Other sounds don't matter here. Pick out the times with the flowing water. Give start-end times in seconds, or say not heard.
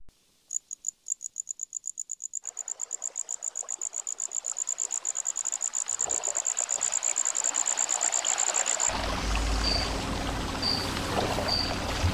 2.4-12.0.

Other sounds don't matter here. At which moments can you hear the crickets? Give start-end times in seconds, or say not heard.
0.0-12.0.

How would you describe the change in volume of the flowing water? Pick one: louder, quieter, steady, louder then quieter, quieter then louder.
louder.